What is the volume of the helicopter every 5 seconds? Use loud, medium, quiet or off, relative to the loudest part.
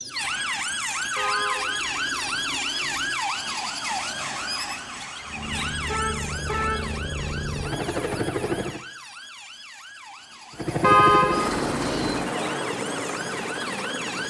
off, loud, loud.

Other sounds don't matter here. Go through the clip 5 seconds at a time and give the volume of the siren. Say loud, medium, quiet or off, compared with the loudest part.
loud, medium, medium.